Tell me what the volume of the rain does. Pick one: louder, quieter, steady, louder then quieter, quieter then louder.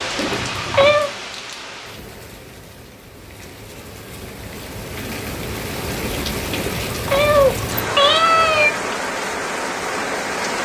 quieter then louder.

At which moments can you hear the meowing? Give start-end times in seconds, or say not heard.
0.1-1.1, 6.5-8.8.